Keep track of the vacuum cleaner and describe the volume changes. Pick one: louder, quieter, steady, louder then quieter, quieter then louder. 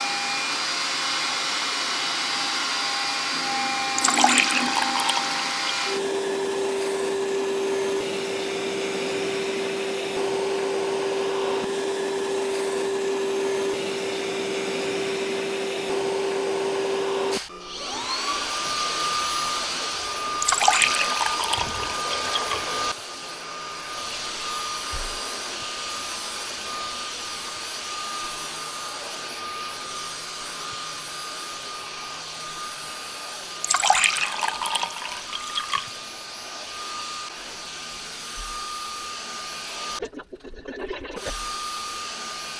quieter.